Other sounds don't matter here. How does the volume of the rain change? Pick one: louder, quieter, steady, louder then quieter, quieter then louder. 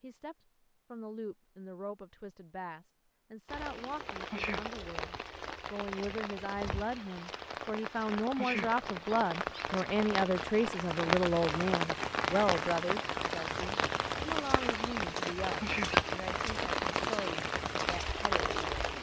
louder.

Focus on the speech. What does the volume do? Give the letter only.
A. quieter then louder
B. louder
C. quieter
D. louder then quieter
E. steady
D.